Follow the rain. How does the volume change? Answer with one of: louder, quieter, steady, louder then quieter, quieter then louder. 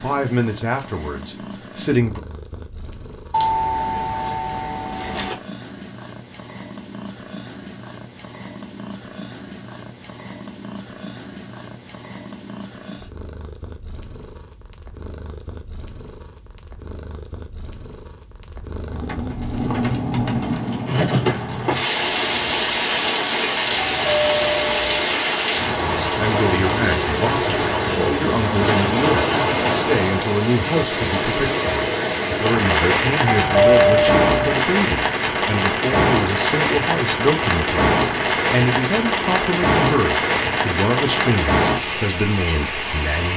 steady.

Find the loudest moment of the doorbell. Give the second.
34 s.